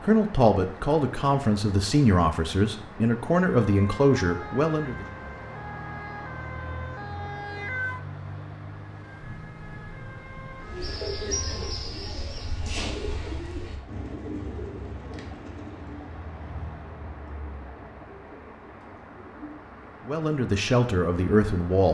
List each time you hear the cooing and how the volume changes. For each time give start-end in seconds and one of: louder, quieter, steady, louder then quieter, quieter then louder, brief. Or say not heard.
10.6-19.6 quieter.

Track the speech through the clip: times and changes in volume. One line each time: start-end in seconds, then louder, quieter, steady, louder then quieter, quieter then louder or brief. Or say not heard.
0.0-5.0 steady
20.1-21.8 brief.